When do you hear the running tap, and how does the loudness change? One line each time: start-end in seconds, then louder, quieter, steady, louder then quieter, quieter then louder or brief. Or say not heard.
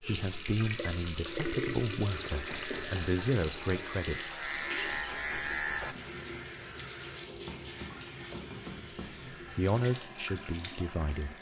0.0-11.3 quieter.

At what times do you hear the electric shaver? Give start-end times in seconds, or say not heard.
2.1-6.0.